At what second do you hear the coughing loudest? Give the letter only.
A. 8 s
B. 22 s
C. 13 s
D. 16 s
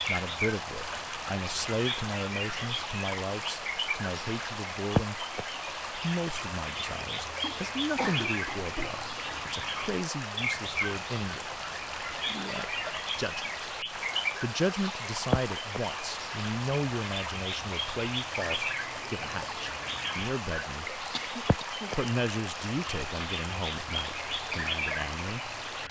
A.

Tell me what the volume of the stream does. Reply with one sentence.
The volume of the stream stays about the same.